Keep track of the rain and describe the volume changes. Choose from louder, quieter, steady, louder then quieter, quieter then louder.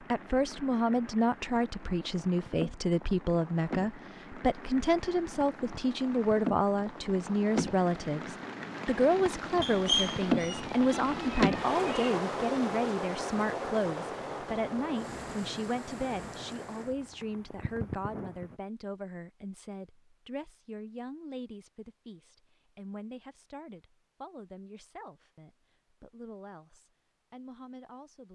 louder then quieter.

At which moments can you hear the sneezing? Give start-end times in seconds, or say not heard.
not heard.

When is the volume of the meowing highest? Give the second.
10 s.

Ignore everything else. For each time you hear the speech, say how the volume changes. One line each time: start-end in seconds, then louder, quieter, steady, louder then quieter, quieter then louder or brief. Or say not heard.
0.1-28.2 quieter.